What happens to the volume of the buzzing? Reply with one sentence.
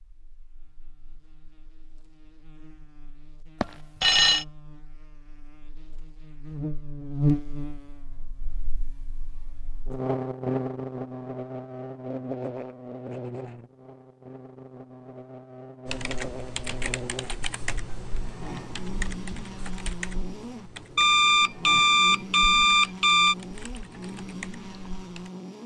The loudness of the buzzing goes up, then down.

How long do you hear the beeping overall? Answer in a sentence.
You can hear the beeping for 3 seconds altogether.